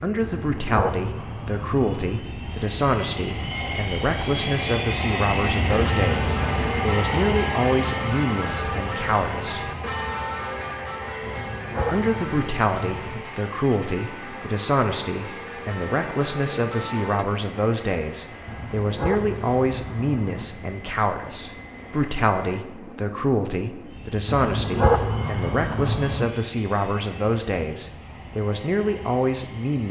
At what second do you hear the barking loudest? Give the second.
25 s.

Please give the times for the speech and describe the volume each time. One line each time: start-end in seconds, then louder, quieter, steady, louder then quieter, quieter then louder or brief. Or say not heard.
0.0-9.7 steady
11.9-29.8 steady.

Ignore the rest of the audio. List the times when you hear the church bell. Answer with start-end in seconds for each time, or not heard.
5.7-17.2.